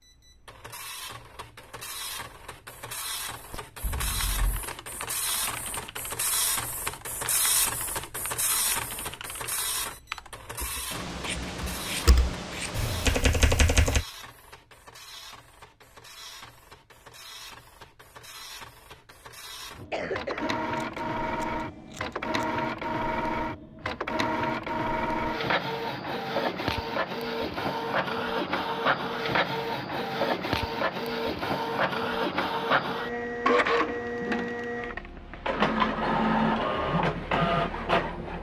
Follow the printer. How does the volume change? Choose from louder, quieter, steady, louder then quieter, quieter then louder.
louder.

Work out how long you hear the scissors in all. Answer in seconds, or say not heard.
4 s.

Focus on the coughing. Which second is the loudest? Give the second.
20 s.